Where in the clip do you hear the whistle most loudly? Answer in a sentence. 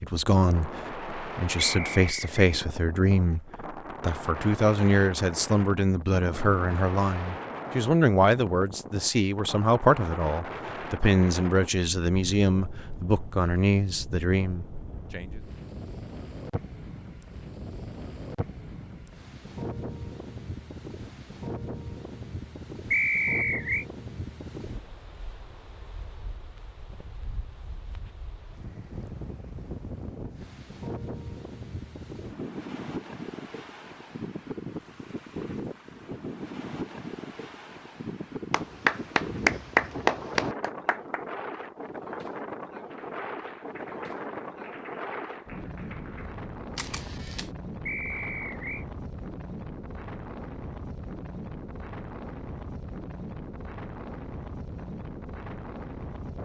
The loudest moment of the whistle is at 23 seconds.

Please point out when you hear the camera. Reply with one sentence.
You can hear the camera from 46.8 to 47.5 s.